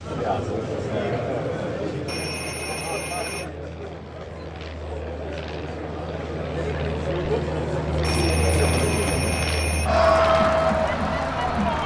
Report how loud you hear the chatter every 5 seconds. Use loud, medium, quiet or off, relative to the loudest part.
medium, medium, loud.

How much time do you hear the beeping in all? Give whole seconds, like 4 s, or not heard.
3 s.